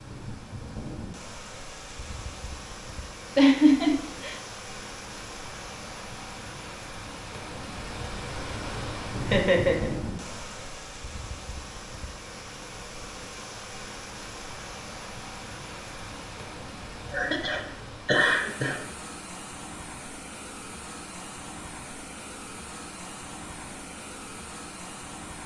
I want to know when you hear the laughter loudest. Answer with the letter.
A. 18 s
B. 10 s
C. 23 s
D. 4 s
D.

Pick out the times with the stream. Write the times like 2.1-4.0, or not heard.
0.0-25.4.